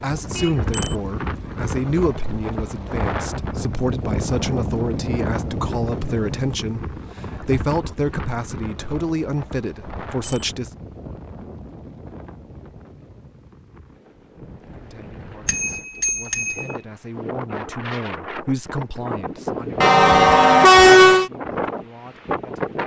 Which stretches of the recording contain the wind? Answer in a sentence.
You can hear the wind from 0.0 to 22.8 s.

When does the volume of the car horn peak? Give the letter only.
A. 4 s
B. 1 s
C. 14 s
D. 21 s
D.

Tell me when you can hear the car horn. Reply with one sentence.
You can hear the car horn from 0.2 to 1.1 s and from 19.8 to 21.3 s.